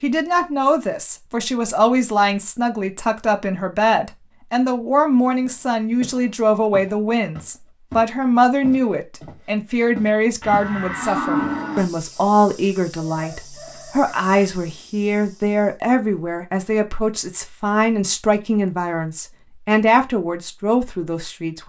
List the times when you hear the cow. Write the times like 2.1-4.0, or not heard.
10.4-11.9.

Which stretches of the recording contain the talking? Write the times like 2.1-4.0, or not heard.
0.0-21.6.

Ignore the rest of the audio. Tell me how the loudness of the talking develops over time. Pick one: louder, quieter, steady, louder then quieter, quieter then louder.
steady.